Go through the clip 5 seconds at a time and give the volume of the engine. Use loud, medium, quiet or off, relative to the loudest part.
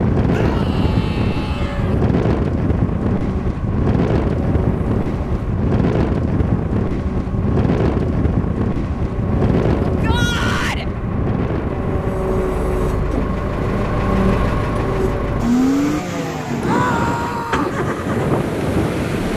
medium, medium, loud, loud.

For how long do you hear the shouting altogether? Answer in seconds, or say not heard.
4 s.